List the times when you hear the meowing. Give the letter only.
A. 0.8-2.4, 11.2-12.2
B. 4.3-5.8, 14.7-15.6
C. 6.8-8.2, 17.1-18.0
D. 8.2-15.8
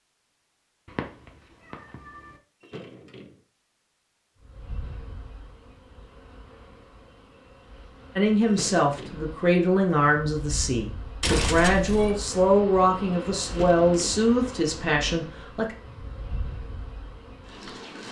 A.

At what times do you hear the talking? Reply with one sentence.
The talking can be heard from 8.2 to 15.8 s.